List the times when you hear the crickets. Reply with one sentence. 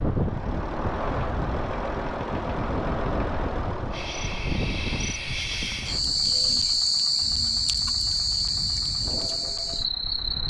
You can hear the crickets from 3.9 to 10.4 s.